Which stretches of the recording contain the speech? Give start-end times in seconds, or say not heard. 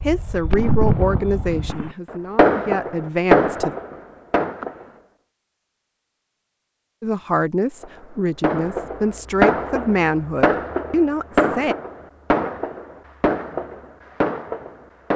0.0-3.8, 7.0-11.8.